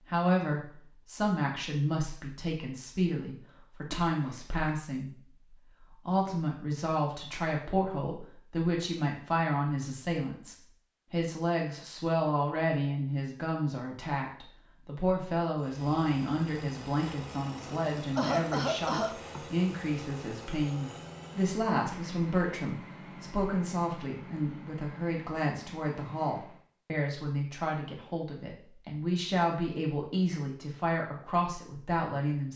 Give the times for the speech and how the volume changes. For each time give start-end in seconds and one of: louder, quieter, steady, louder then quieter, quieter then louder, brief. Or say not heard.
0.0-32.5 steady.